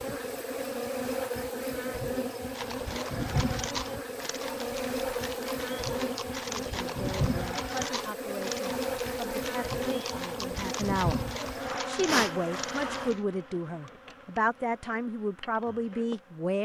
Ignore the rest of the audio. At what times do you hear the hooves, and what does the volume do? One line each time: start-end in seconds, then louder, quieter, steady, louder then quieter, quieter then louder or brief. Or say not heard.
2.5-13.2 steady.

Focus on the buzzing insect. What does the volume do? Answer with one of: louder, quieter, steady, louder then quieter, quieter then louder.
quieter.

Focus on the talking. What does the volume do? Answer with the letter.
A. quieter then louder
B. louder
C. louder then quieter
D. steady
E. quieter
B.